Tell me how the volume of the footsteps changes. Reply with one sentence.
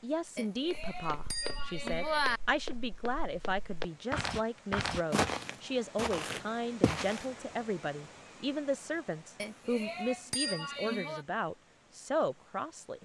The loudness of the footsteps goes up.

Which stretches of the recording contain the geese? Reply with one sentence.
The geese can't be heard in this clip.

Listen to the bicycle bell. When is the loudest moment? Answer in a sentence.
The loudest moment of the bicycle bell is at 2 seconds.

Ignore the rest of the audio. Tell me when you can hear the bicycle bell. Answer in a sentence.
You can hear the bicycle bell from 0.3 to 2.4 s and from 9.3 to 11.2 s.